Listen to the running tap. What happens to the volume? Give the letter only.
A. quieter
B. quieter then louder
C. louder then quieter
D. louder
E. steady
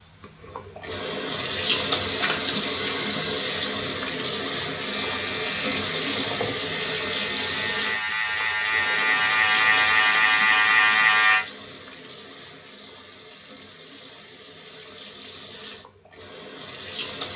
A.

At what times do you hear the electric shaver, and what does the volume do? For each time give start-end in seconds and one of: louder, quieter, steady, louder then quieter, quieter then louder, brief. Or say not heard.
4.8-11.4 louder.